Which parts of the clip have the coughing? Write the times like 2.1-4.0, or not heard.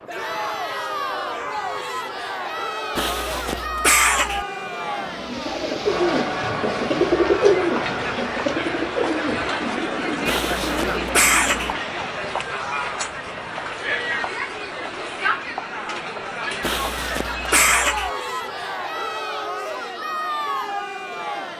3.0-4.5, 10.2-11.8, 16.6-18.1.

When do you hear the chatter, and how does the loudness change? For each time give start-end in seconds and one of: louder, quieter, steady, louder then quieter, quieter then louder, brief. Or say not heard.
0.1-21.5 steady.